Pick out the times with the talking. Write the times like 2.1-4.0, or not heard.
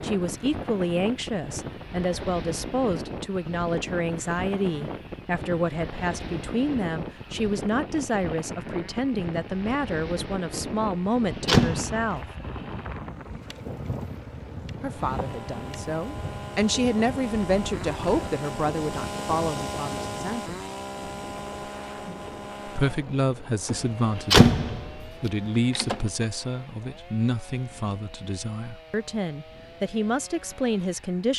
0.0-12.2, 14.8-20.6, 22.6-31.3.